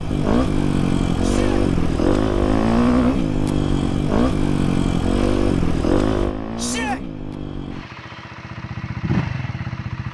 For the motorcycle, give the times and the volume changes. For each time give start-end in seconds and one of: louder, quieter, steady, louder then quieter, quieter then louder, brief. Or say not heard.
0.0-10.0 quieter.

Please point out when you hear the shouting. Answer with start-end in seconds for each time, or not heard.
1.2-1.6, 6.5-7.0.